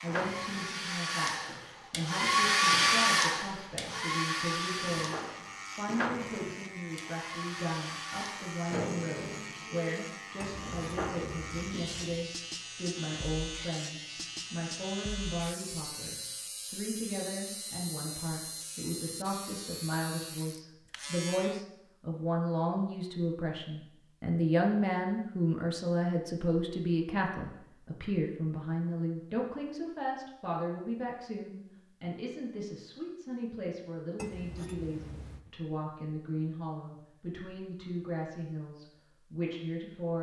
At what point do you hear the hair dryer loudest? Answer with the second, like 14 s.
3 s.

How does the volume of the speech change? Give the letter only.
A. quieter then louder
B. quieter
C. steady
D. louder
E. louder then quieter
E.